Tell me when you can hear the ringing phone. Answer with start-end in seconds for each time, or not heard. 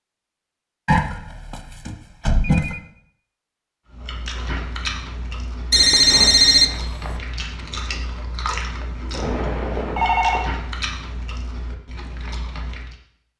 0.8-2.8, 5.7-7.2, 9.1-10.5.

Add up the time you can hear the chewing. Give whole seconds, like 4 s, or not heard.
9 s.